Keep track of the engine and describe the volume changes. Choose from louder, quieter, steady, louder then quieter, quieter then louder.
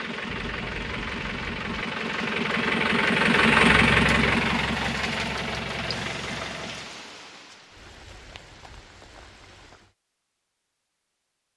louder then quieter.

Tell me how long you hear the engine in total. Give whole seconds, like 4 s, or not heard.
7 s.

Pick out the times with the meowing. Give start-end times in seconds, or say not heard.
0.2-1.9.